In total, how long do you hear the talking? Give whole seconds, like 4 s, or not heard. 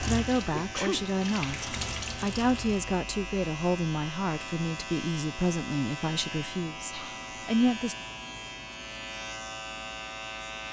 8 s.